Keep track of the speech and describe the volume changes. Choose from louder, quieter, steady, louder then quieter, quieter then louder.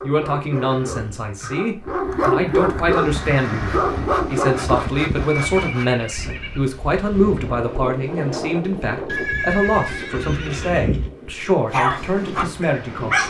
steady.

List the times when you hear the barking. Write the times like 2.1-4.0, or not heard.
0.0-4.8, 11.7-13.2.